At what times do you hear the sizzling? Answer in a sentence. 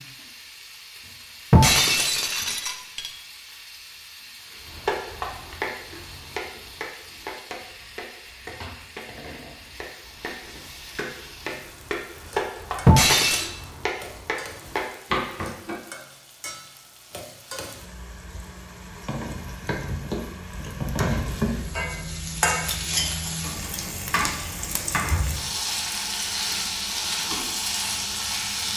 You can hear the sizzling from 0.0 to 28.7 s.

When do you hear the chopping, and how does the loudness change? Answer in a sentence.
The chopping can be heard from 4.6 to 15.8 s, getting quieter then louder.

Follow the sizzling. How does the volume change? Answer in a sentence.
The volume of the sizzling goes up.